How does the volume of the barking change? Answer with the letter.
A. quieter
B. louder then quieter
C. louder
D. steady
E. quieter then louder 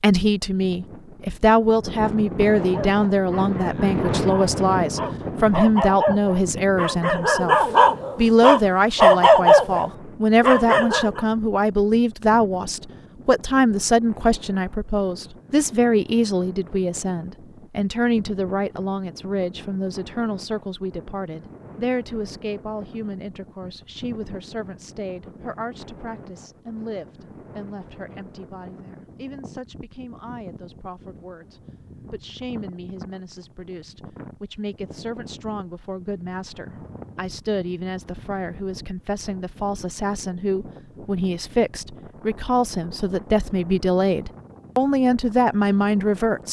C.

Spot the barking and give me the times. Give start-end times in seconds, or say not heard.
2.5-11.2.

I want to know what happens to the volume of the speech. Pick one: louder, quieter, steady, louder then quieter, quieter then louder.
quieter then louder.